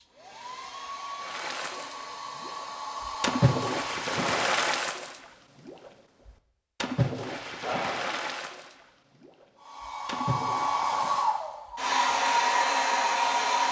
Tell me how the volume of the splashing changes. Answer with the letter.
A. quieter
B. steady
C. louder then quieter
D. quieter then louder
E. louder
A.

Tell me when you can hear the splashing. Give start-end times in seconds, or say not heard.
1.2-11.4.